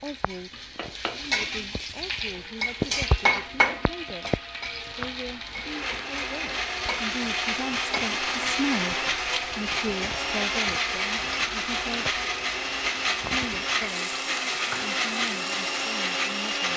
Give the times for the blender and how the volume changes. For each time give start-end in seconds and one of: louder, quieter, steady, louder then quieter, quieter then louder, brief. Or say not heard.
5.5-16.7 steady.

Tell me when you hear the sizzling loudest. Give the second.
3 s.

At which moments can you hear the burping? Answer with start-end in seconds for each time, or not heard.
not heard.